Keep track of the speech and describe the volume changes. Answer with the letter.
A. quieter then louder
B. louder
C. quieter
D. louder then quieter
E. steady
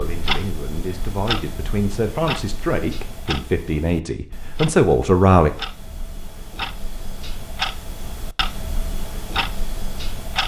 B.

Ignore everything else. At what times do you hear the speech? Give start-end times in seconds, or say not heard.
0.0-5.5.